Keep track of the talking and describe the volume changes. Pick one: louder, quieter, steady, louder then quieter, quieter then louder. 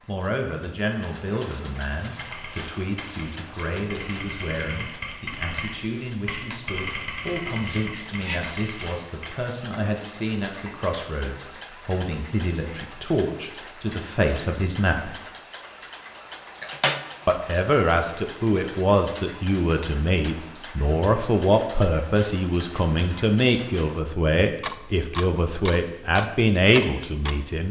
louder.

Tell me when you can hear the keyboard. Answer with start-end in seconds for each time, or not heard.
2.1-9.3.